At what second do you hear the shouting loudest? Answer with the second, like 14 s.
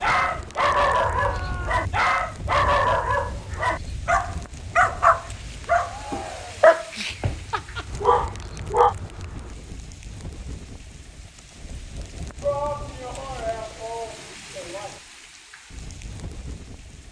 13 s.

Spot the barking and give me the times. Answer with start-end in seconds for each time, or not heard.
0.0-8.9.